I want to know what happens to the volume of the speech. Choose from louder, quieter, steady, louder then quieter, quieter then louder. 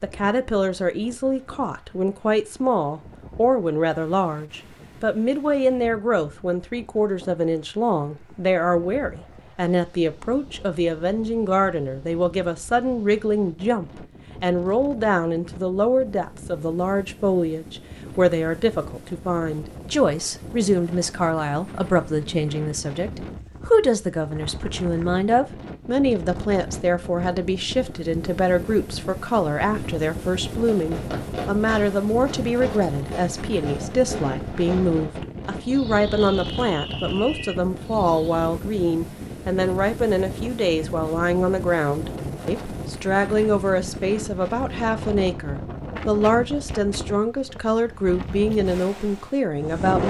steady.